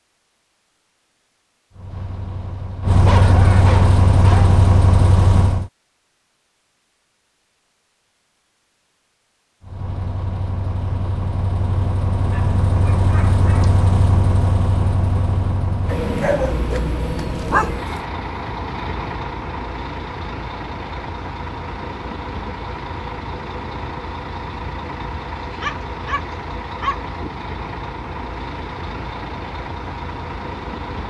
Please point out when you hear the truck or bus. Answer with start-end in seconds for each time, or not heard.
1.7-5.7, 9.6-31.0.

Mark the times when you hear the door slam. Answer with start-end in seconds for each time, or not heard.
not heard.